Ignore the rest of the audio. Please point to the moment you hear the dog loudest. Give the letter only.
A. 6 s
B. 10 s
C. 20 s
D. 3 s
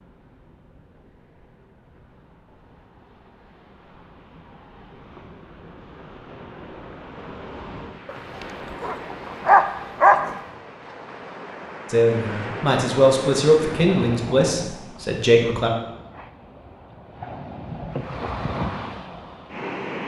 B.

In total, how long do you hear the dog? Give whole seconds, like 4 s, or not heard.
2 s.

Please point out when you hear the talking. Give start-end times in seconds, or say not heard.
11.9-15.7.